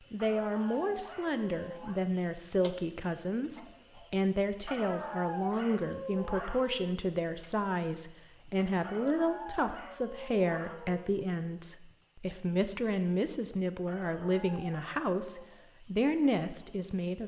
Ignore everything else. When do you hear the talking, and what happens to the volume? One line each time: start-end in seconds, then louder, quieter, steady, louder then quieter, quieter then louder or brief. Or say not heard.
0.1-17.2 steady.